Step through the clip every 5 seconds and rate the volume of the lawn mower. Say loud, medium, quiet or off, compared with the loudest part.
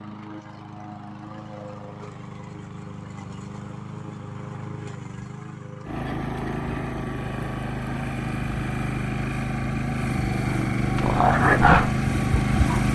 quiet, medium, loud.